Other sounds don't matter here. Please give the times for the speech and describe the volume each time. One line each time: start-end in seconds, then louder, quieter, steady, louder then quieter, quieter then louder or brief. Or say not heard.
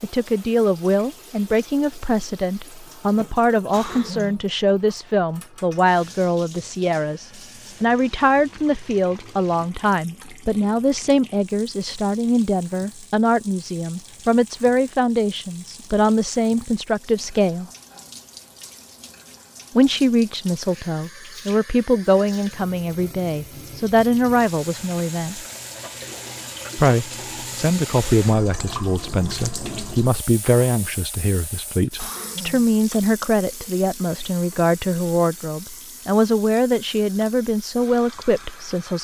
0.0-17.7 steady
19.8-25.4 steady
26.8-38.9 steady.